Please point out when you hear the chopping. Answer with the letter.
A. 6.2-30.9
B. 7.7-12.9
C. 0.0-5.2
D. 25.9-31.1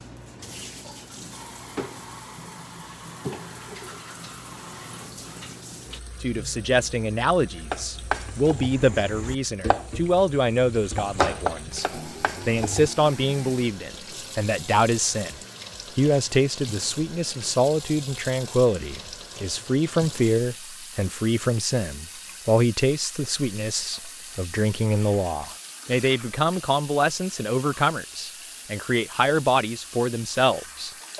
B.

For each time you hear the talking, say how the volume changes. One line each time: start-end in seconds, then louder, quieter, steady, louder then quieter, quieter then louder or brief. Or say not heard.
6.2-30.9 steady.